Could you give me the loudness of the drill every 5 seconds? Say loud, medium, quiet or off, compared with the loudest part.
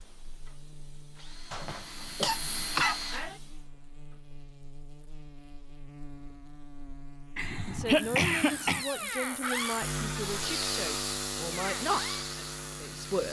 medium, loud, medium.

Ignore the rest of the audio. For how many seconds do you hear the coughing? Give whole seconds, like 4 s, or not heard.
3 s.